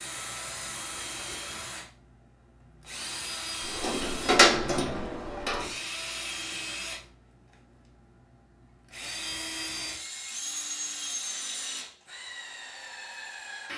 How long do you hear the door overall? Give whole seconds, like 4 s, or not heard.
2 s.